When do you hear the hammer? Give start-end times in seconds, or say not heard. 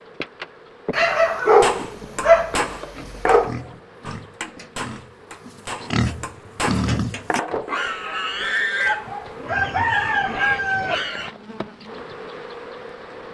1.6-7.7.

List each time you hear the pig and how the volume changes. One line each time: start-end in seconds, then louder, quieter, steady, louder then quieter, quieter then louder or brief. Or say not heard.
3.0-11.3 louder then quieter.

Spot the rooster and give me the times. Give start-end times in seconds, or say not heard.
9.4-11.0.